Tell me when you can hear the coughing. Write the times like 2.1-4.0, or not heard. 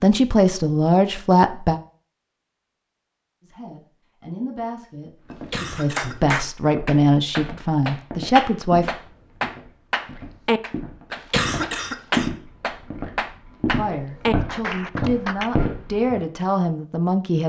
5.3-6.3, 11.1-12.3.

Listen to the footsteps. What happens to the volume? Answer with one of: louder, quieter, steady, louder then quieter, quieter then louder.
louder.